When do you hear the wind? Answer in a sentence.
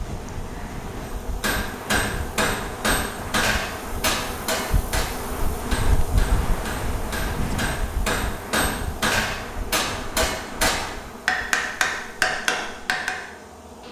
The wind can be heard from 0.0 to 11.4 s.